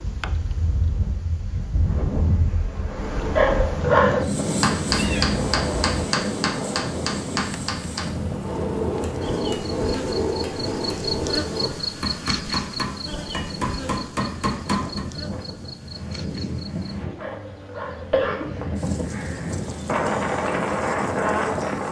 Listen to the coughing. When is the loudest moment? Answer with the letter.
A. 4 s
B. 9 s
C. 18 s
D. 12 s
A.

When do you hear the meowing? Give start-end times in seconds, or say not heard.
4.9-6.0.